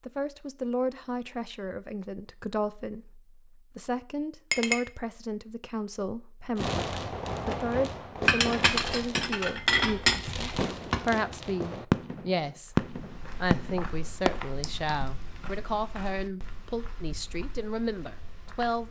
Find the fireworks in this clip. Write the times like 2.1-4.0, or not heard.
6.5-14.9.